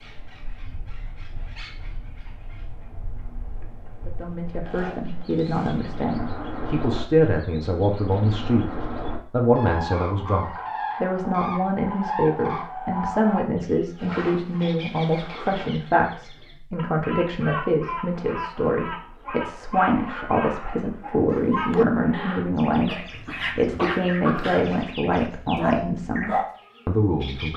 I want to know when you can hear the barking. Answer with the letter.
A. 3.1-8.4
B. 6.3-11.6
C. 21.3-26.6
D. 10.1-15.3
C.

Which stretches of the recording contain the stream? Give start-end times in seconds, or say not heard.
not heard.